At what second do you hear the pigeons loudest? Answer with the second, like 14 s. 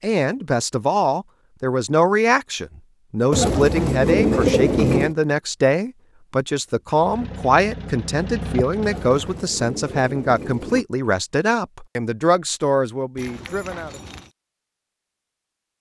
4 s.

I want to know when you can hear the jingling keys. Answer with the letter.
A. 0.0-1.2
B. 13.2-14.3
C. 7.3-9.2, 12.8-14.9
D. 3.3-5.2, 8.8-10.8
B.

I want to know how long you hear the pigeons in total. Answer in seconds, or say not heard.
4 s.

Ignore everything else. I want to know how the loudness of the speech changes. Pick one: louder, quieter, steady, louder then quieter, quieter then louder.
steady.